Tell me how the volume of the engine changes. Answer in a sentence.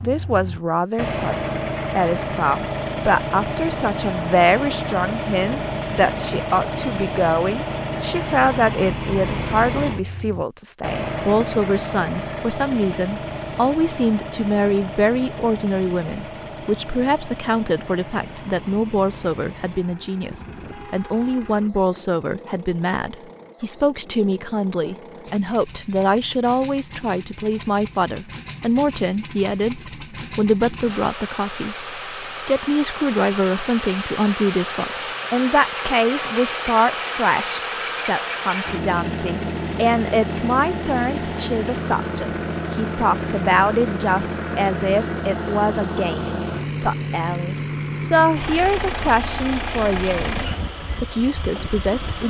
The volume of the engine goes down, then up.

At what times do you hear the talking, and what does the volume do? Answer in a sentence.
The talking can be heard from 0.0 to 50.4 s, at a steady volume; and briefly from 51.0 to 52.2 s.